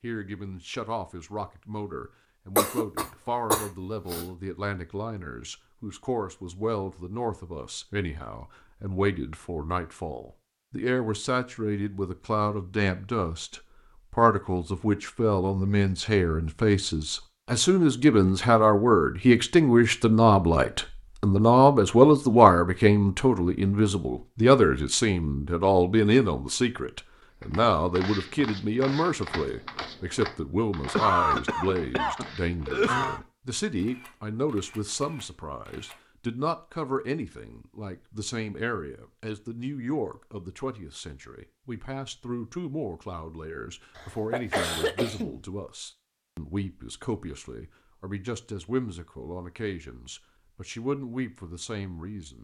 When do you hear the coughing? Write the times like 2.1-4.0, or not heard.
2.5-4.2, 30.9-33.2, 44.0-45.5.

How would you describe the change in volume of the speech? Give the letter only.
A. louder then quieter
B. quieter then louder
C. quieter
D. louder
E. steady
A.